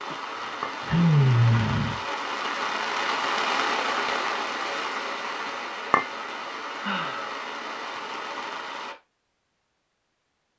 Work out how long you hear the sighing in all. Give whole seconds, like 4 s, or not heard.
2 s.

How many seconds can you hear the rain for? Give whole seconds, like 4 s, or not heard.
9 s.